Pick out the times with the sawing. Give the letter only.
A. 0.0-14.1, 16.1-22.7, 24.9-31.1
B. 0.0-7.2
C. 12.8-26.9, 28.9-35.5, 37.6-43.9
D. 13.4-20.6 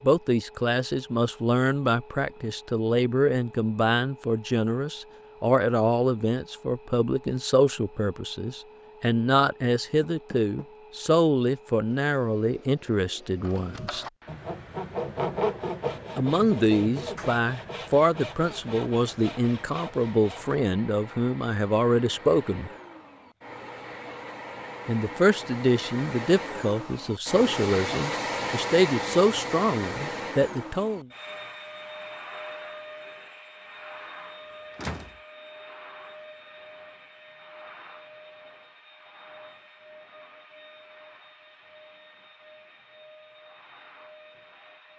D.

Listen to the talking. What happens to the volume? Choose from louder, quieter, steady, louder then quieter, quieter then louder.
steady.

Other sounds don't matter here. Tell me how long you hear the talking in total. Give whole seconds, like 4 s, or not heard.
27 s.